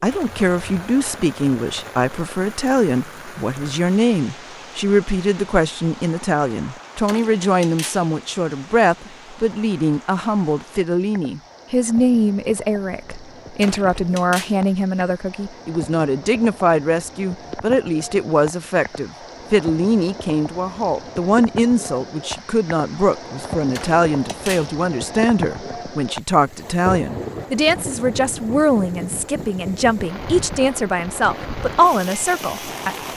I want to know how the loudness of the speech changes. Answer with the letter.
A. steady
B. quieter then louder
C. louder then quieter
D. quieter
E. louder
A.